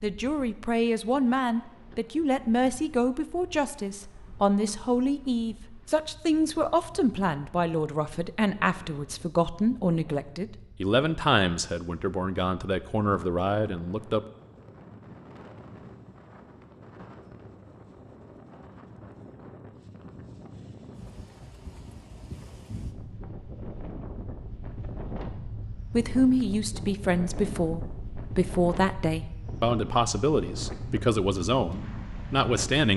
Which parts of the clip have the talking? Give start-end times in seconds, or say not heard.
0.0-14.2, 25.8-32.9.